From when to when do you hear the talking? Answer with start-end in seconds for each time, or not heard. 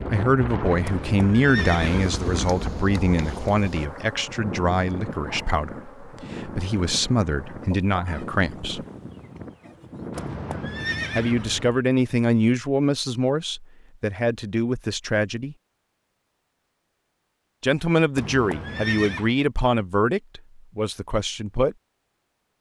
0.1-8.8, 11.2-15.6, 17.6-21.8.